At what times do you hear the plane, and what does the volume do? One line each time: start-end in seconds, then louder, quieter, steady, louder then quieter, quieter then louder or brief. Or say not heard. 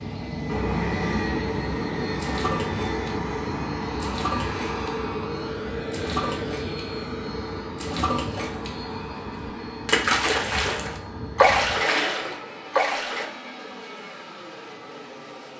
0.0-15.5 quieter.